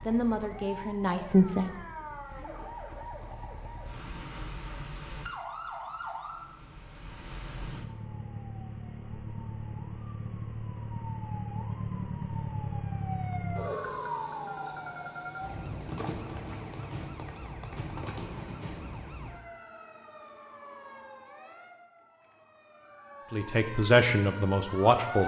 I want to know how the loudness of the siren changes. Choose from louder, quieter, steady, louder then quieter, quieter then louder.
louder then quieter.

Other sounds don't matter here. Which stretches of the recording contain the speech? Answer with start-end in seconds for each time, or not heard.
0.1-1.7, 23.3-25.2.